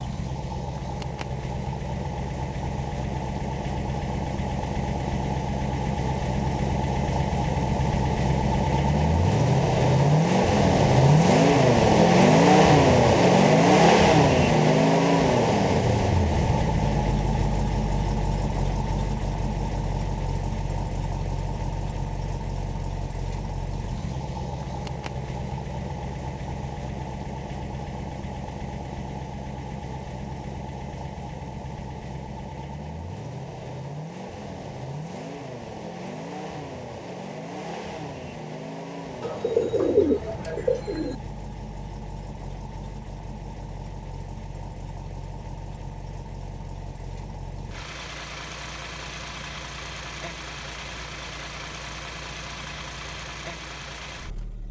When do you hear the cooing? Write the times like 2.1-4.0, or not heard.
39.2-41.1.